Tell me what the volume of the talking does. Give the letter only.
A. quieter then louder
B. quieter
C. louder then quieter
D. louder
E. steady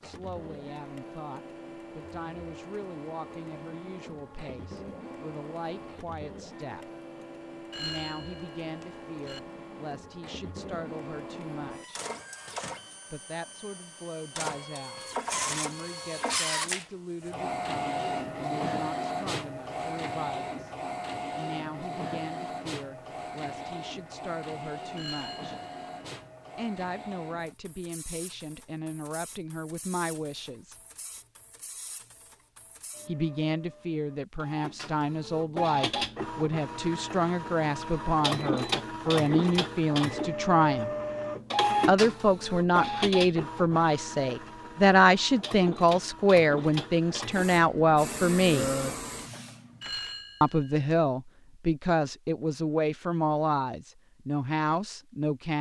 D.